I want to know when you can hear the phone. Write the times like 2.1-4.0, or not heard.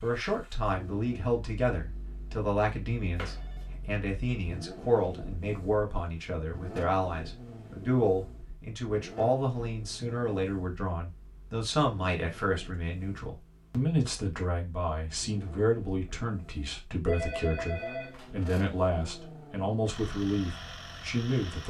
3.1-3.6, 17.1-18.3.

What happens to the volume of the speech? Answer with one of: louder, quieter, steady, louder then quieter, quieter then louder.
steady.